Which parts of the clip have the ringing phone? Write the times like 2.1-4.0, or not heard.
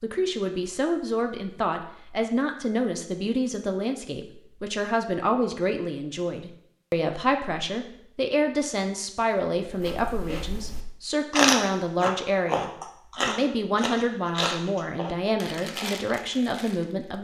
not heard.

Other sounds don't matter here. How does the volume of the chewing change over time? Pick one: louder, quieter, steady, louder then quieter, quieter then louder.
louder then quieter.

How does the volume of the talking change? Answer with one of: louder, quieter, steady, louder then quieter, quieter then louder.
steady.